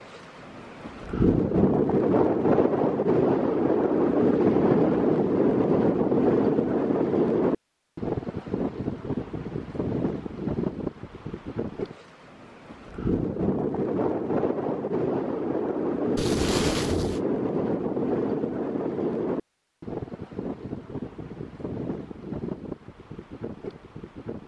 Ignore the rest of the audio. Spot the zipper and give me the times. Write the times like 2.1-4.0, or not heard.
16.1-17.2.